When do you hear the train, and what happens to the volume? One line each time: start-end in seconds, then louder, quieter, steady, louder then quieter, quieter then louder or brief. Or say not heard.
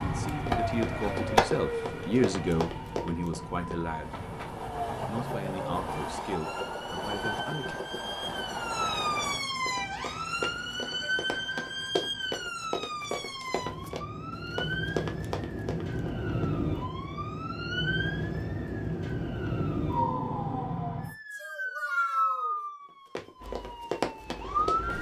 0.0-9.4 quieter then louder
23.4-24.9 brief.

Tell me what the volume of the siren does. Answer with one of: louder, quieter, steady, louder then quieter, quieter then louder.
steady.